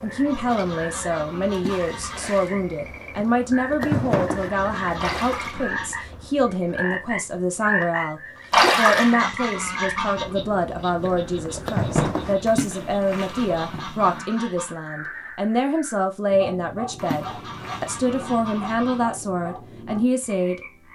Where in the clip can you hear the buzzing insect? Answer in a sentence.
The buzzing insect can be heard from 0.0 to 12.6 s.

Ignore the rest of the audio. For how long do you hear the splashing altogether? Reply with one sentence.
You can hear the splashing for 6 seconds altogether.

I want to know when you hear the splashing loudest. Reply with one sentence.
The loudest moment of the splashing is at 9 seconds.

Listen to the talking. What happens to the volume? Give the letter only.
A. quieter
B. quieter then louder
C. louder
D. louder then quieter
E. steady
E.